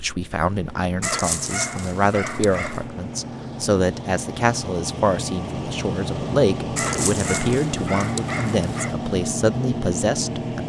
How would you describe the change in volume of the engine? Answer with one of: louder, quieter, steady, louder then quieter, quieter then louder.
louder.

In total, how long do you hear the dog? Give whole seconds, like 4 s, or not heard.
4 s.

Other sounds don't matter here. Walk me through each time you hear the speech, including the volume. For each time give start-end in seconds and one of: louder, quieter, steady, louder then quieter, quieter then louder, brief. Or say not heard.
0.0-10.6 steady.